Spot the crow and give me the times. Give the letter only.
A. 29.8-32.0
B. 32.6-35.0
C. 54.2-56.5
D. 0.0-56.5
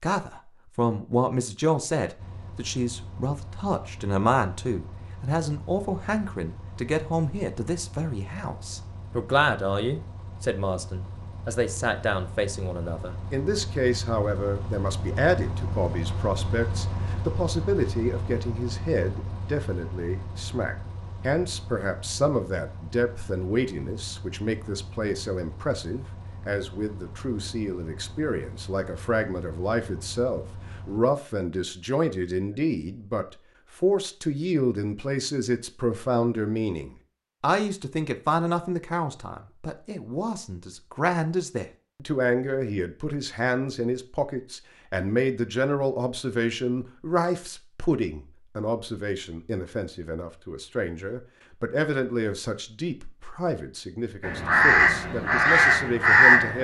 C.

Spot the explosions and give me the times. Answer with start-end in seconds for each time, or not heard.
not heard.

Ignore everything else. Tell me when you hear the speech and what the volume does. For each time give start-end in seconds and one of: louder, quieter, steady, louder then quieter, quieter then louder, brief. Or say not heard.
0.0-56.5 steady.